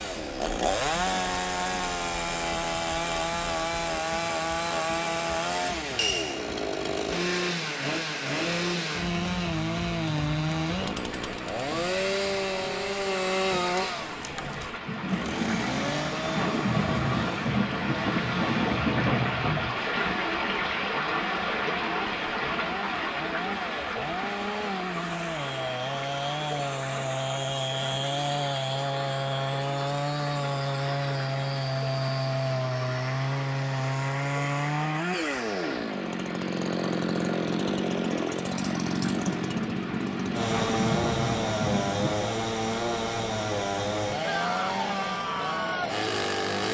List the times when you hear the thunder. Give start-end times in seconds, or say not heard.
14.8-19.8, 39.2-42.1.